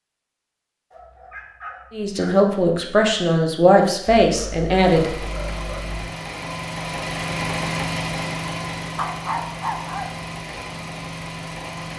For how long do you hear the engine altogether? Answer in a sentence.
You can hear the engine for 7 seconds altogether.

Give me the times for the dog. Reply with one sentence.
The dog can be heard from 0.9 to 2.4 s, from 4.2 to 6.1 s and from 8.9 to 10.1 s.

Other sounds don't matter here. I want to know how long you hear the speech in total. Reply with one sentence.
The speech can be heard for 3 seconds in total.